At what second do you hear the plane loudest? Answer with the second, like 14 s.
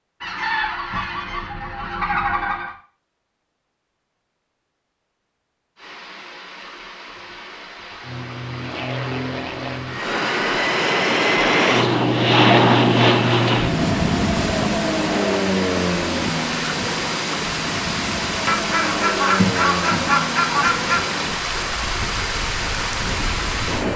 13 s.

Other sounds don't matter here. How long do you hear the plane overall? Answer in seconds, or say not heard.
16 s.